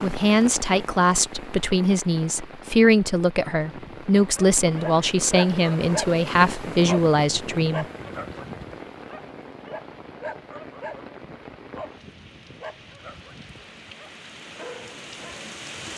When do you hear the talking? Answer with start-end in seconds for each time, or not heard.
0.0-7.8.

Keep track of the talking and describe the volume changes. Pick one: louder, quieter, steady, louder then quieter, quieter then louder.
steady.